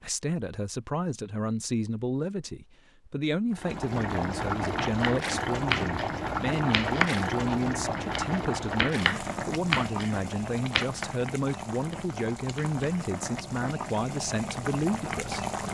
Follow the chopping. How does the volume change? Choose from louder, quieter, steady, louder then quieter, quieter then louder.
quieter.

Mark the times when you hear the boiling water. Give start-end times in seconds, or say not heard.
3.5-15.7.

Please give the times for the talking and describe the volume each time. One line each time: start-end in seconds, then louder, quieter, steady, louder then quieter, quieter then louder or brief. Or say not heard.
0.0-15.4 steady.